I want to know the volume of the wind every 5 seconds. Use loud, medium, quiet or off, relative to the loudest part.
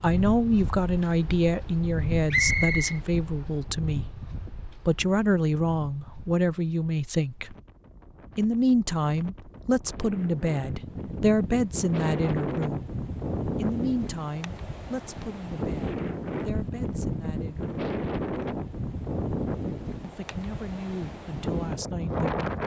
medium, quiet, loud, loud, loud.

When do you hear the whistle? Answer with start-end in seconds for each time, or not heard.
2.3-3.0.